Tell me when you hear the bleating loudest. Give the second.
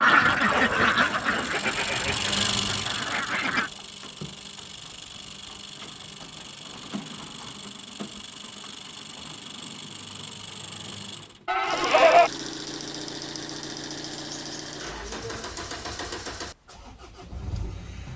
12 s.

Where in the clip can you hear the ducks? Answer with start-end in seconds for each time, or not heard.
0.0-3.7.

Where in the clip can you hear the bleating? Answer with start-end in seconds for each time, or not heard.
0.5-2.4, 11.4-12.3.